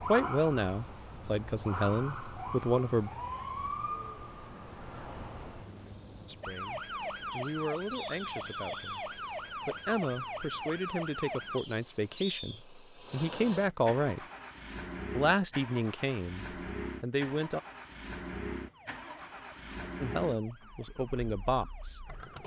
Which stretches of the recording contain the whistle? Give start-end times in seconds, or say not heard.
7.3-9.1, 11.6-12.7.